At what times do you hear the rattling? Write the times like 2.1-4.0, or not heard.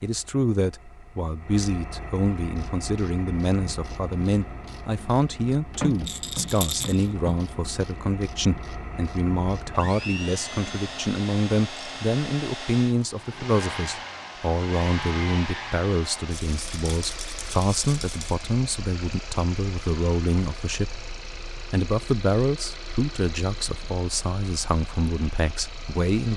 6.0-7.3, 16.3-18.4.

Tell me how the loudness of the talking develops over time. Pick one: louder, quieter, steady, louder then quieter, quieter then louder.
steady.